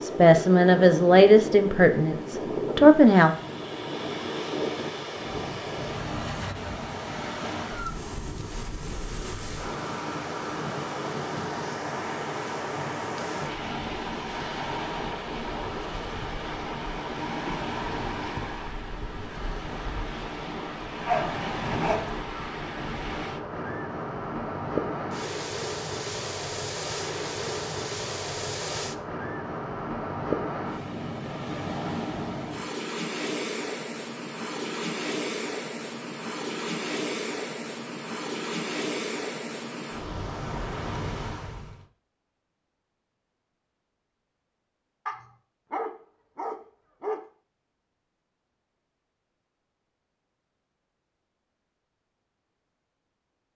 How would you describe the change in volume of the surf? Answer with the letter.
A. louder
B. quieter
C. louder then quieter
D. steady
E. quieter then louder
D.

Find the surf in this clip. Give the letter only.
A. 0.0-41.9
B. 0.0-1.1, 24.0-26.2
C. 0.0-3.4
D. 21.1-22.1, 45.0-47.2
A.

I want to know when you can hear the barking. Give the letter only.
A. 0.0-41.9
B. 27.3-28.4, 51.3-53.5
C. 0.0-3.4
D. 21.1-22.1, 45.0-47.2
D.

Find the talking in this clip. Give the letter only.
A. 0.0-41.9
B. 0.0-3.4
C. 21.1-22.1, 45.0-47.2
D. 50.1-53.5
B.